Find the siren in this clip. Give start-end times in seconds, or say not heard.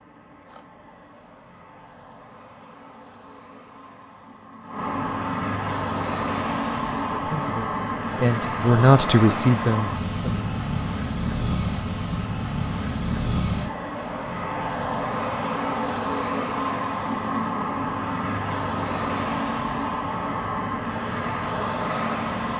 not heard.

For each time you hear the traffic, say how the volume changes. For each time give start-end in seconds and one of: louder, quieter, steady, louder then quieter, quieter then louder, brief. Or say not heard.
0.0-22.5 louder.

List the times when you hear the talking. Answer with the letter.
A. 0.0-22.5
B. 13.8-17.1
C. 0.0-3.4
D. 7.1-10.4
D.